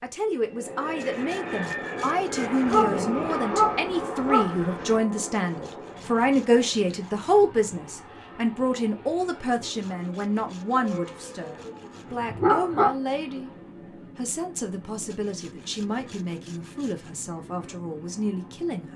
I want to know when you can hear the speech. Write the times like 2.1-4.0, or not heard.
0.0-13.5, 14.2-18.9.